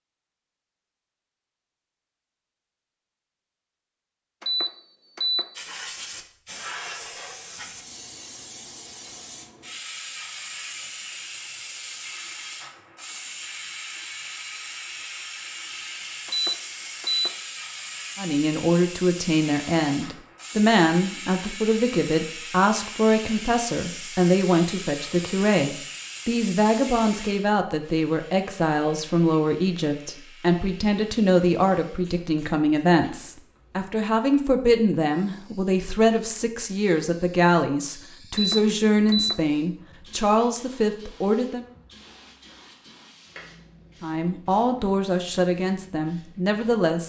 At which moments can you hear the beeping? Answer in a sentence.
You can hear the beeping from 4.4 to 5.5 s, from 16.2 to 17.4 s and from 38.3 to 39.4 s.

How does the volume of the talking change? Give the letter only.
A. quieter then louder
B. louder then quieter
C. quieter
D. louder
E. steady
E.